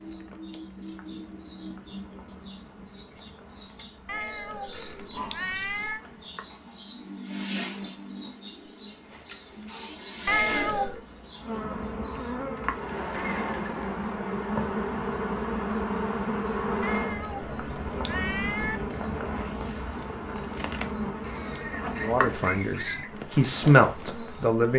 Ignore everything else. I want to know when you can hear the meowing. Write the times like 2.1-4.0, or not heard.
4.0-6.0, 10.2-11.1, 16.8-18.8.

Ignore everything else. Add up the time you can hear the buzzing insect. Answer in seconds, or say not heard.
25 s.